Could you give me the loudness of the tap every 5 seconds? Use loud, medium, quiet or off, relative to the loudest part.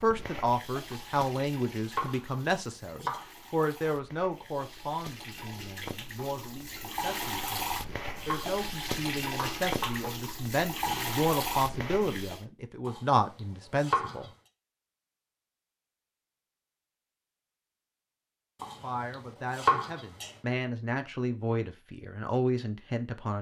quiet, loud, loud, off, off.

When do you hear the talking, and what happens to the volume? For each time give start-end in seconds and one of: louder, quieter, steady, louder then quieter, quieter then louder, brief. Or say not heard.
0.0-14.3 quieter then louder
18.8-23.3 louder.